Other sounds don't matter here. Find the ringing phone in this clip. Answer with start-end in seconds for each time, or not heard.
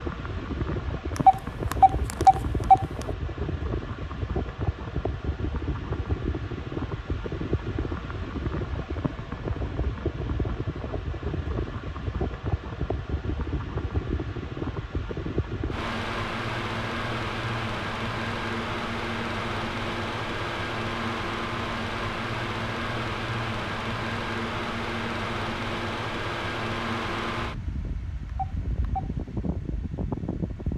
1.1-2.9, 28.2-29.1.